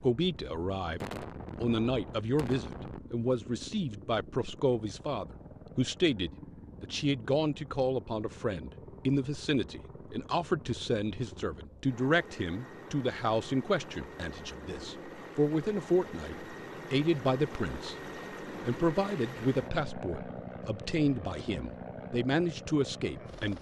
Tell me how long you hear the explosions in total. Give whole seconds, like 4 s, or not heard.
2 s.